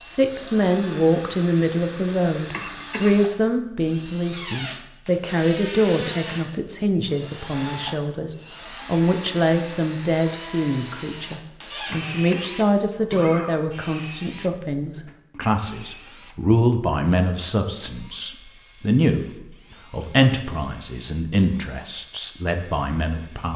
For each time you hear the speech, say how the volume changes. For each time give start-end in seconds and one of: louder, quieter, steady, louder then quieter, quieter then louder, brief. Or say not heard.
0.0-23.5 steady.